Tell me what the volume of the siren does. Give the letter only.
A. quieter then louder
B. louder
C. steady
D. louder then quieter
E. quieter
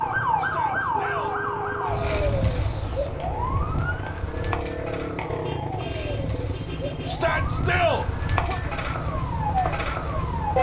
A.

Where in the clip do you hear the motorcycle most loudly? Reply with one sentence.
The volume of the motorcycle peaks at 5 seconds.